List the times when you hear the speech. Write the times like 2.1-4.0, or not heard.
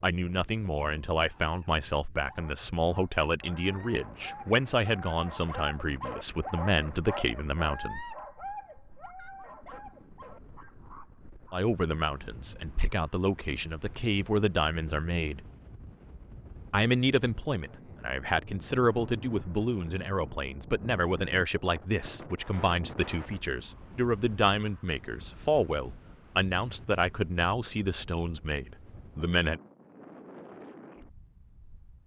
0.0-8.1, 11.5-15.4, 16.7-29.6.